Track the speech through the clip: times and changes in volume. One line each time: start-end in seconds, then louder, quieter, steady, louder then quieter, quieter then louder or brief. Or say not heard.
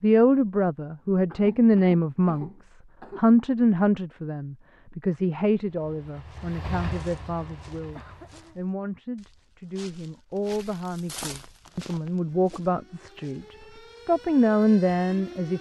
0.0-15.5 quieter then louder.